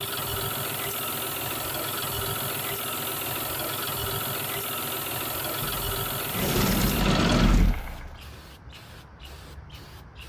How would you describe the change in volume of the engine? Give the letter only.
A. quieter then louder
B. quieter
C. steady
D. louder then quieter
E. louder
C.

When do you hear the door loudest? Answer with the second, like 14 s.
7 s.